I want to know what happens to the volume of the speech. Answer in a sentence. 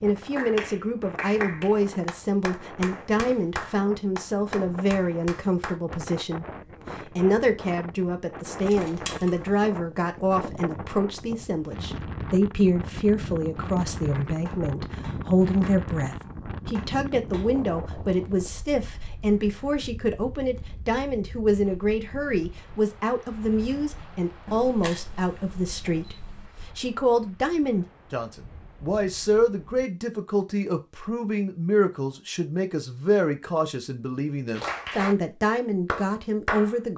The volume of the speech stays about the same.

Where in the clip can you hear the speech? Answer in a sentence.
The speech can be heard from 0.0 to 36.9 s.